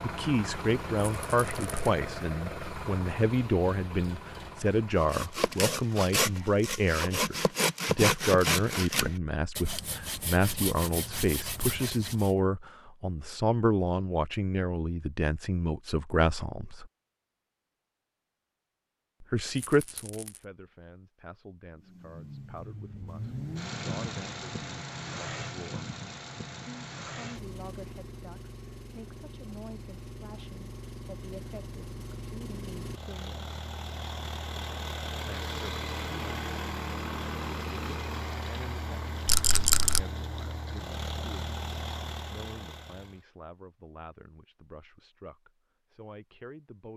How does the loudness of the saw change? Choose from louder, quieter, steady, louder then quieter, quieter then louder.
quieter.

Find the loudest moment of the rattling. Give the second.
40 s.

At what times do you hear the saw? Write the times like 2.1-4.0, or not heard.
5.0-12.3.